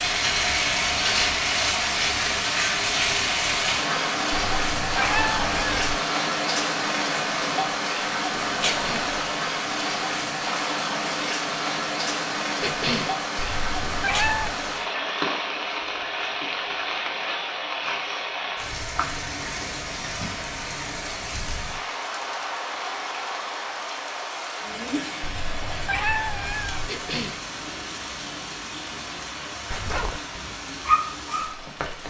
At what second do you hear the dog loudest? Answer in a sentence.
The volume of the dog peaks at 31 seconds.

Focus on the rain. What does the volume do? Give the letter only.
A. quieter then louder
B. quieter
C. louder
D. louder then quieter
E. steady
B.